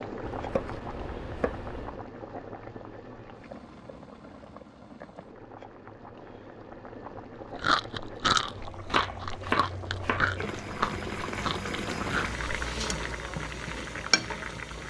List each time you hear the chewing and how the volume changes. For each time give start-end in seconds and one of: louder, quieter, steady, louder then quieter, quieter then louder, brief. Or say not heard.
7.5-12.4 quieter.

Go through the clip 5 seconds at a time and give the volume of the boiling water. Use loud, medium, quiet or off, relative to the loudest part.
medium, medium, loud.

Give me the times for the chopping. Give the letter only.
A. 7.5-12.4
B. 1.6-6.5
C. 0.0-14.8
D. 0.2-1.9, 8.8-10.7
D.